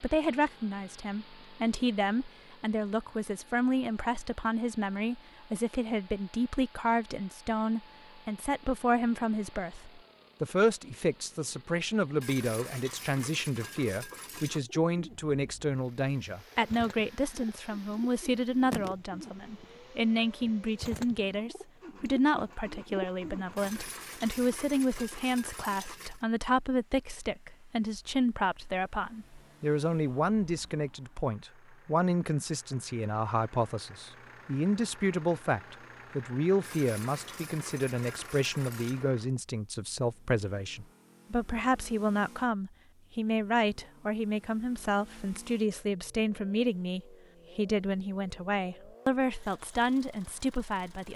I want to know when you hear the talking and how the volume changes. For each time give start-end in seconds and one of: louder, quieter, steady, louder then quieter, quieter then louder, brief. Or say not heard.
0.0-51.1 steady.